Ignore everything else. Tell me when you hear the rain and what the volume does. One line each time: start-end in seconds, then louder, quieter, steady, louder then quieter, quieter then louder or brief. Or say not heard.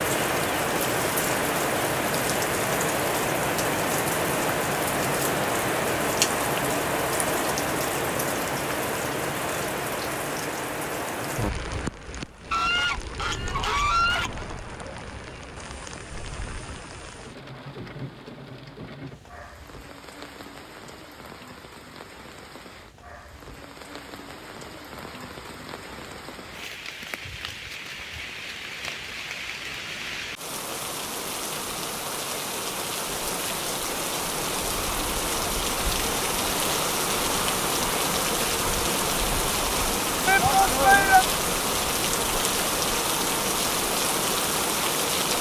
0.0-45.3 quieter then louder.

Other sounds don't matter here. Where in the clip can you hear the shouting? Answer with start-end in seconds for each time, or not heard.
40.2-41.2.